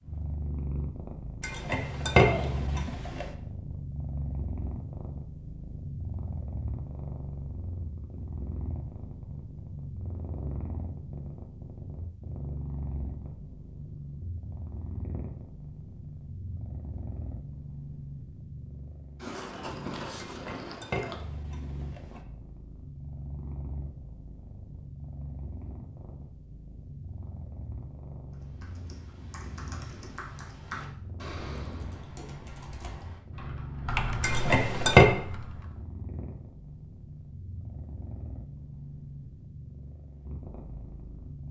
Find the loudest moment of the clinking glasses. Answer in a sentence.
The volume of the clinking glasses peaks at 35 seconds.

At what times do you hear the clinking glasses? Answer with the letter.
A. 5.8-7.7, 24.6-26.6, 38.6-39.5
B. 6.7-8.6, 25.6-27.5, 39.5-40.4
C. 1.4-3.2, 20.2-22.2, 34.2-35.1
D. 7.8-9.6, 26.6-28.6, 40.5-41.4
C.